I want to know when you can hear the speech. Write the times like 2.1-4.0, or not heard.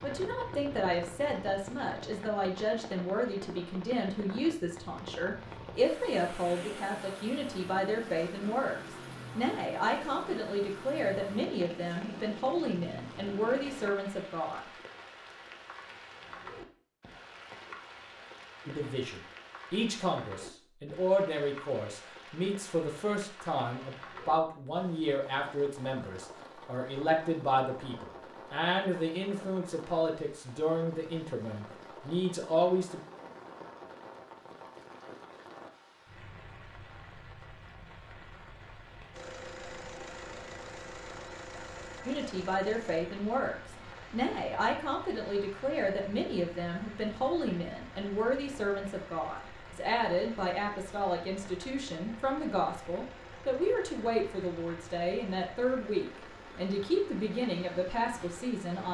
0.0-14.6, 18.6-33.0, 42.0-58.8.